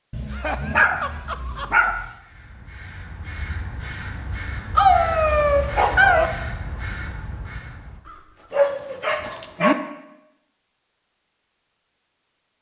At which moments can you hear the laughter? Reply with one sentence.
The laughter can be heard from 0.3 to 1.9 s.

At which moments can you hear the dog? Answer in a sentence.
You can hear the dog from 0.1 to 2.0 s, from 4.8 to 6.3 s and from 8.5 to 9.8 s.